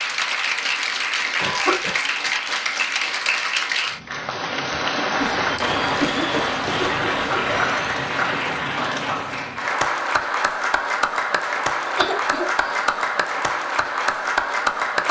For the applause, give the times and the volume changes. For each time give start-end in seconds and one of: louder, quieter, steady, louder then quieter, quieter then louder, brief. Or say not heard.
0.0-15.0 steady.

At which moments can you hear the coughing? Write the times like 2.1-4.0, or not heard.
1.4-1.9, 5.2-7.7, 11.8-12.9.